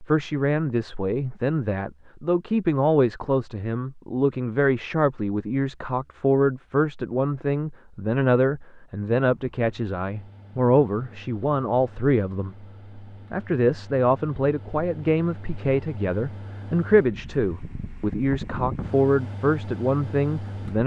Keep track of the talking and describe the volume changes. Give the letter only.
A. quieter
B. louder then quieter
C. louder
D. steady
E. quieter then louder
D.